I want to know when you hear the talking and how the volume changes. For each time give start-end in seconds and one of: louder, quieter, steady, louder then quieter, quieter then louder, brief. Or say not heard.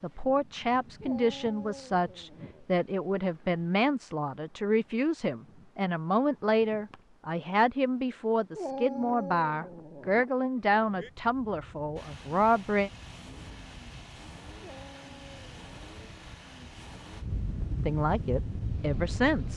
0.0-12.9 steady
17.9-19.5 brief.